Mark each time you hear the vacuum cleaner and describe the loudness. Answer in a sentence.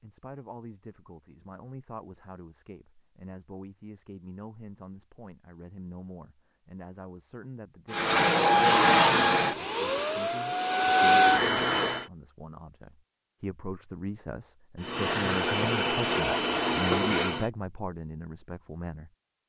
The vacuum cleaner can be heard from 7.9 to 12.1 s, getting quieter then louder; and briefly from 14.8 to 17.5 s.